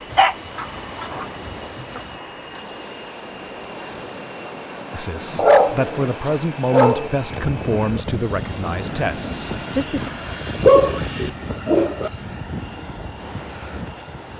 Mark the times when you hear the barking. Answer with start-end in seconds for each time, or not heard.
0.1-2.0, 5.3-7.1, 10.6-12.1.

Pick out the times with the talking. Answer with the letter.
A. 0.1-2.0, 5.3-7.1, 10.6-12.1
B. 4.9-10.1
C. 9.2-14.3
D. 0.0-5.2
B.